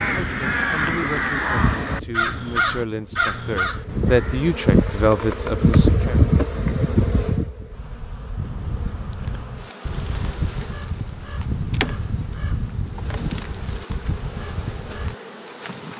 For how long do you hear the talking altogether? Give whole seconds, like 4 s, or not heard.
6 s.